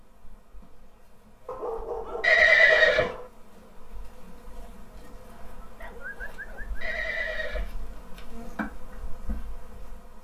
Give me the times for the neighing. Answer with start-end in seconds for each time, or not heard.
2.2-3.1, 6.8-8.2.